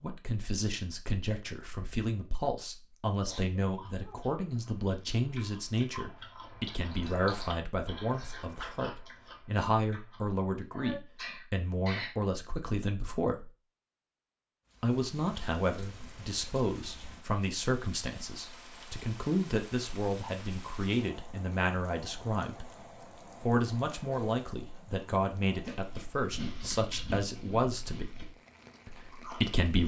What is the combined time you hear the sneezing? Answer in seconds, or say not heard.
3 s.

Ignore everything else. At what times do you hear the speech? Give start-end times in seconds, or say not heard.
0.0-13.5, 14.8-22.7, 23.4-28.1, 28.9-29.8.